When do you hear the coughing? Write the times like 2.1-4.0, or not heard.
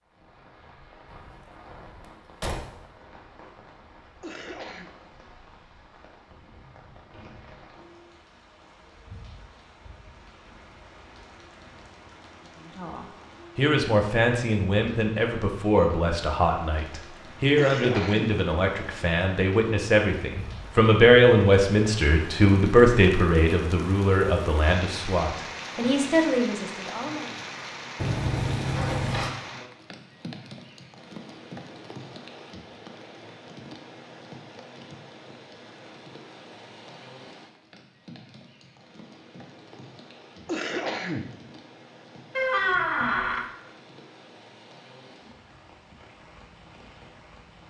4.2-4.9, 17.6-18.4, 40.5-41.3.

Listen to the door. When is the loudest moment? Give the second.
43 s.